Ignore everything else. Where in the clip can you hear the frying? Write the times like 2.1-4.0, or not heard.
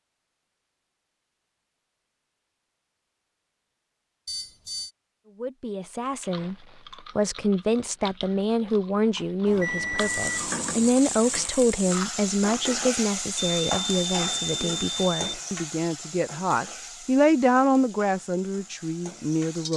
9.9-19.7.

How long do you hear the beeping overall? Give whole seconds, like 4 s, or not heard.
4 s.